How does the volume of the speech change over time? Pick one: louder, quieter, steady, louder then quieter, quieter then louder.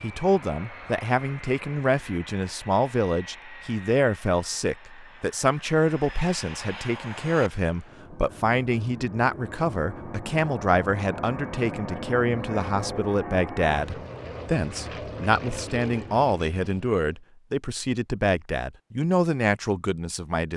steady.